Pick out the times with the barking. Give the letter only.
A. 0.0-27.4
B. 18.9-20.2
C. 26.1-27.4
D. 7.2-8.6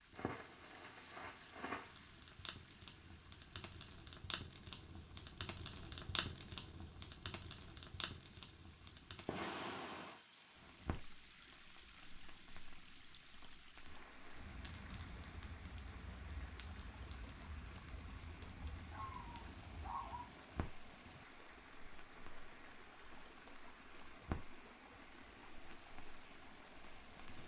B.